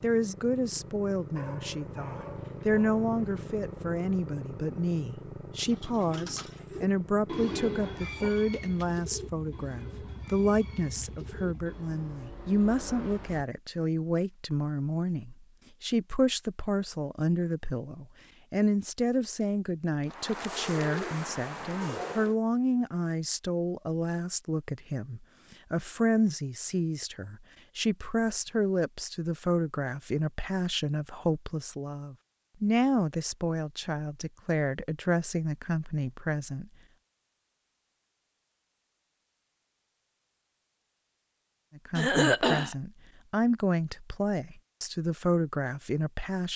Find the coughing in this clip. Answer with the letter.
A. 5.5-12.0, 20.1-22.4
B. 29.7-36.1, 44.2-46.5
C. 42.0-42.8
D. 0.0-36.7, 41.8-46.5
C.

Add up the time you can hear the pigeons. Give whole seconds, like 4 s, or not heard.
9 s.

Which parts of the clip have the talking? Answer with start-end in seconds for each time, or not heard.
0.0-36.7, 41.8-46.5.